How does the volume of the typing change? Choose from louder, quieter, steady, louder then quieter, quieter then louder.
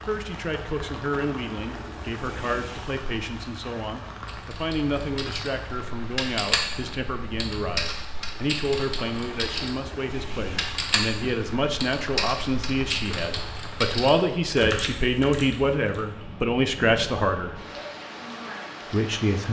steady.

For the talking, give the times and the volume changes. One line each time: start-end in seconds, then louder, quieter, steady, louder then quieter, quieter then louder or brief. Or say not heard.
0.1-17.6 louder
18.9-19.4 brief.